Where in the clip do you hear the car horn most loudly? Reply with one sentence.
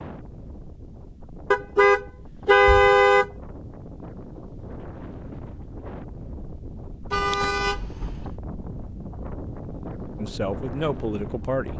The volume of the car horn peaks at 3 seconds.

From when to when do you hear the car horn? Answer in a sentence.
The car horn can be heard from 1.5 to 3.3 s and from 7.1 to 8.3 s.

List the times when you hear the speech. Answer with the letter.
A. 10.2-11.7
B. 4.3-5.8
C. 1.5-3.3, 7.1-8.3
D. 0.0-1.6
A.